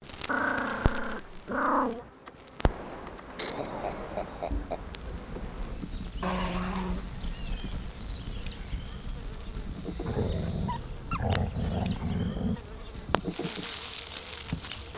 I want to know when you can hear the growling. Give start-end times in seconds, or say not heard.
0.2-2.1, 6.2-7.0, 10.1-12.6.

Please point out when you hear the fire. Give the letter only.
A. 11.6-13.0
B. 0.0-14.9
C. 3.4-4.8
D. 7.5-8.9
B.